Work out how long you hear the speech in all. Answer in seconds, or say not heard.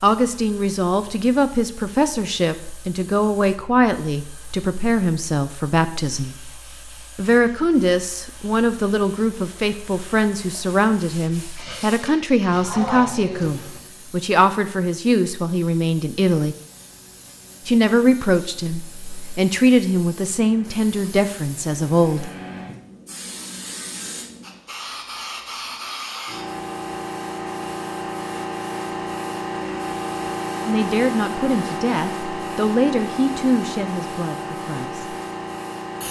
26 s.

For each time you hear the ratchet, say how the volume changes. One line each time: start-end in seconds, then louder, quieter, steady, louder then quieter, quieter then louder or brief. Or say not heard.
not heard.